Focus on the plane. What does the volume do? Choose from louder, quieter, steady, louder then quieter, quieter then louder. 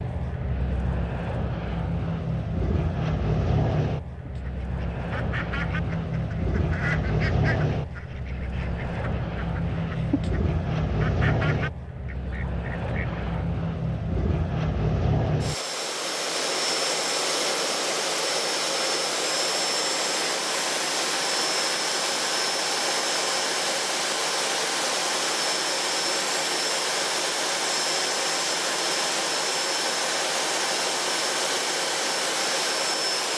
steady.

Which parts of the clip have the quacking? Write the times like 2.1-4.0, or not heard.
4.2-13.4.